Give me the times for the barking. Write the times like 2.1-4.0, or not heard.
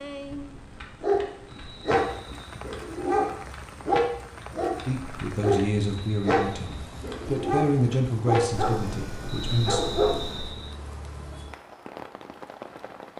0.8-10.5.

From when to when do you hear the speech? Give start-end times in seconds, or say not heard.
4.8-9.8.